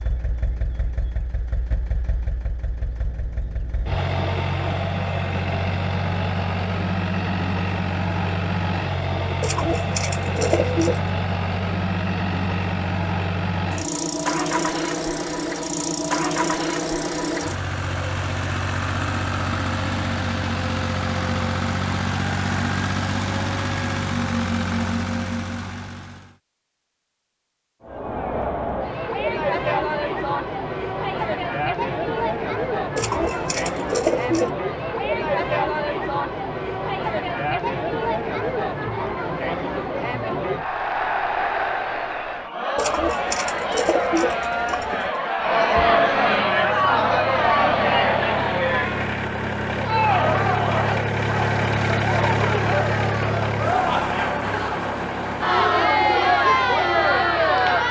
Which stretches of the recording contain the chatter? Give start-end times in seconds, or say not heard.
27.8-57.8.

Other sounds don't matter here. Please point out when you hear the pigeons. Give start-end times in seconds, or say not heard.
9.4-11.0, 33.0-34.5, 42.8-45.2.